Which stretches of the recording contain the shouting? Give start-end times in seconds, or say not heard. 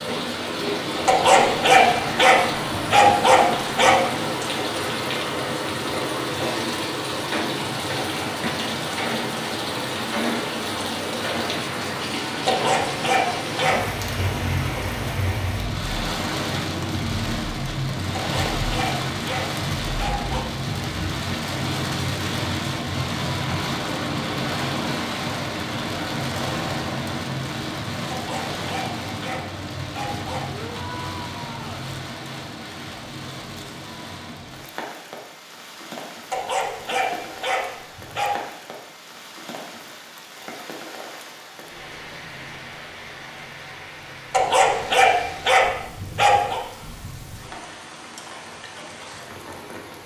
30.6-31.9.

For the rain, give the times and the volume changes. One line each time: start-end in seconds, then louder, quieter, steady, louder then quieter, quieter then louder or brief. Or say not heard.
0.0-50.0 quieter.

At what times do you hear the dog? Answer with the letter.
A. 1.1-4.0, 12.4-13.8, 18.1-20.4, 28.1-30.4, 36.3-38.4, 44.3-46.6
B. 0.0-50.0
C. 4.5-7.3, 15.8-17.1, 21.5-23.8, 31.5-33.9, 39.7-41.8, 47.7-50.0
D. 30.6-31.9
A.